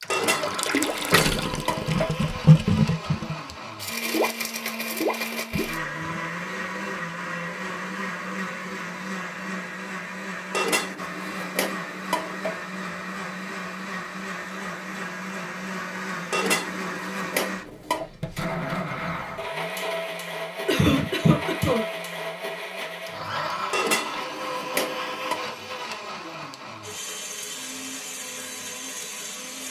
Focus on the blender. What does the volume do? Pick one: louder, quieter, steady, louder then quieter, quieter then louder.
steady.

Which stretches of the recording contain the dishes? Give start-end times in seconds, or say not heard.
0.1-2.1, 10.5-12.6, 16.3-18.1, 23.7-25.4.